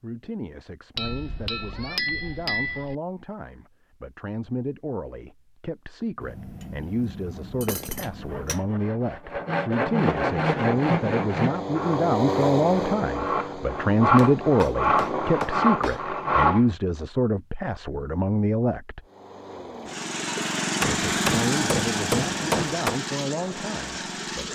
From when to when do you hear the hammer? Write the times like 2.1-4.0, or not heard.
0.9-3.0, 6.2-8.7, 14.2-16.1, 20.8-23.0.